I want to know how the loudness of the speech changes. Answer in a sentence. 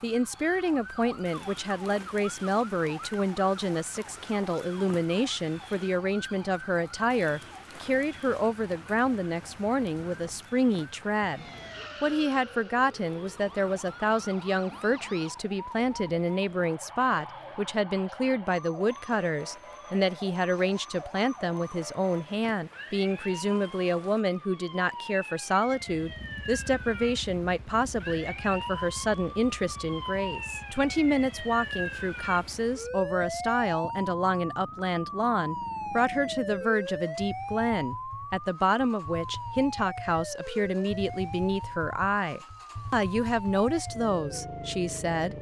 The volume of the speech stays about the same.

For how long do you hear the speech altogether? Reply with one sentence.
The speech can be heard for 45 seconds in total.